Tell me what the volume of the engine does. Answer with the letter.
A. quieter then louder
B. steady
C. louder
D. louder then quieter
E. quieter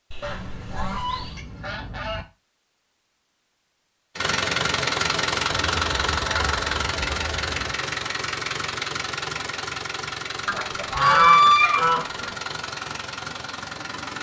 E.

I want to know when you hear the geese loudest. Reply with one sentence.
The loudest moment of the geese is at 11 seconds.